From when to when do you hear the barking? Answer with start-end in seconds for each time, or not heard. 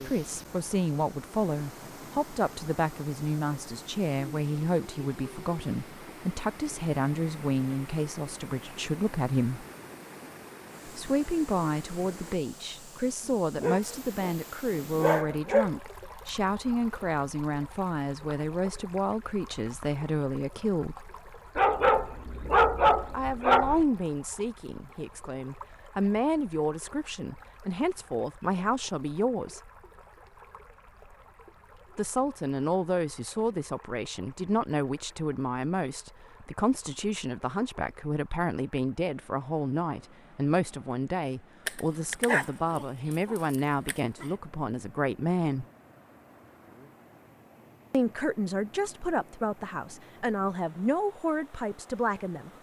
13.6-15.7, 21.6-23.9, 41.6-44.2.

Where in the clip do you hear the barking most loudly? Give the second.
23 s.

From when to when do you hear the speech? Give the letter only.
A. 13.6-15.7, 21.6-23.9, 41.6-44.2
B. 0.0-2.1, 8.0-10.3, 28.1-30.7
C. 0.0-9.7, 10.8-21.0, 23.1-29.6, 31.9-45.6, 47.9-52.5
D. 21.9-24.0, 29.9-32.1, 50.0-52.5
C.